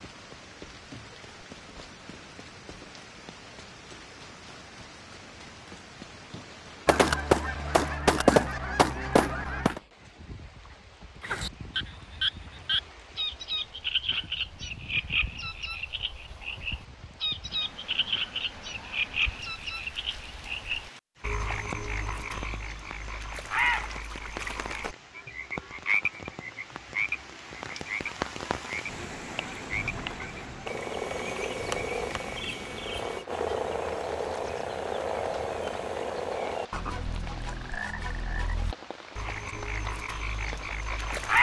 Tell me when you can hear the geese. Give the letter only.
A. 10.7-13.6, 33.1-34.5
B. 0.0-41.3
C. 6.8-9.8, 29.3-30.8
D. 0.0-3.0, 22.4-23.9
C.